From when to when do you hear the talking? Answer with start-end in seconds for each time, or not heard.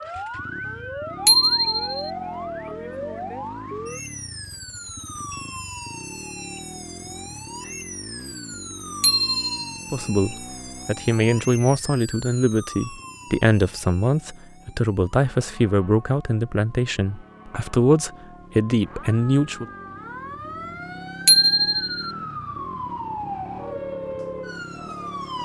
9.9-19.6.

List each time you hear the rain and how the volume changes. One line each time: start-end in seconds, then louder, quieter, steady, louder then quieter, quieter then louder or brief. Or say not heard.
not heard.